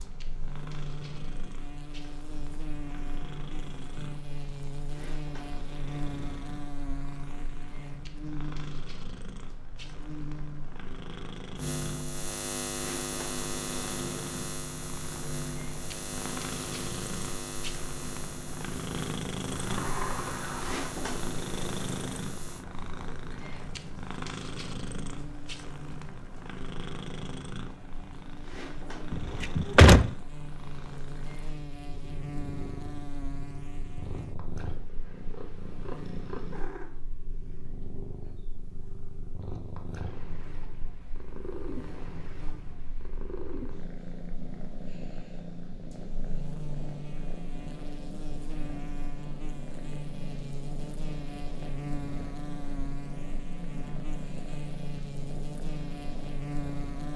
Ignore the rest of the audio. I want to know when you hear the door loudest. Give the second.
30 s.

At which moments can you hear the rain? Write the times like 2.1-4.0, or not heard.
not heard.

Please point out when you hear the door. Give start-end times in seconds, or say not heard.
19.4-20.9, 29.1-30.1.